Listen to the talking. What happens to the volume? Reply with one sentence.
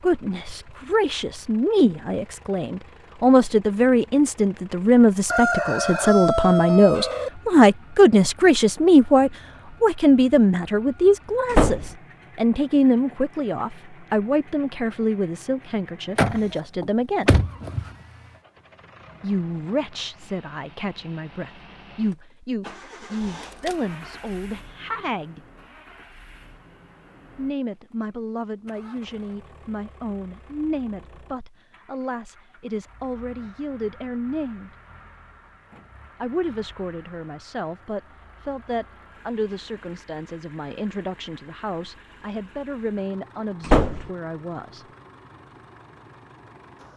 The volume of the talking goes down.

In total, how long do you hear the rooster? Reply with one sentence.
You can hear the rooster for 2 seconds altogether.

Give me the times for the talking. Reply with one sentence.
The talking can be heard from 0.0 to 17.4 s, from 19.2 to 25.4 s, from 27.4 to 34.7 s and from 36.2 to 44.9 s.